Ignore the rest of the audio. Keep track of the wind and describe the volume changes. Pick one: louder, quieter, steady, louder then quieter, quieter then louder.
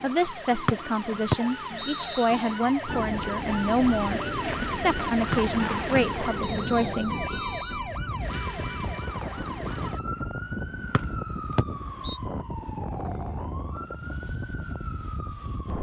steady.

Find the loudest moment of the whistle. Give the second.
1 s.